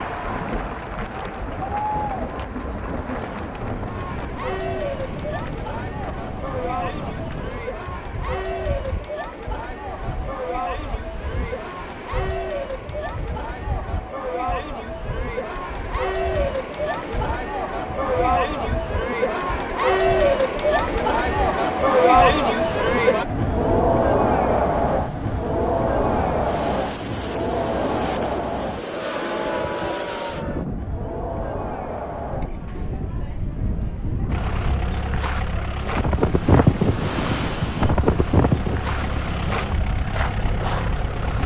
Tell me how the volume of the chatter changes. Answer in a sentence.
The volume of the chatter goes up, then down.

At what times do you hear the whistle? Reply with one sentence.
The whistle can't be heard in this clip.